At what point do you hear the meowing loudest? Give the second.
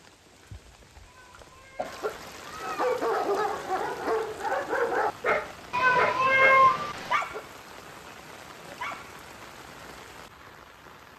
7 s.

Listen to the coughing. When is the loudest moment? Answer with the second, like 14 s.
2 s.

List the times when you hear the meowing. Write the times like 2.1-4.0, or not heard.
1.1-3.0, 5.7-7.2.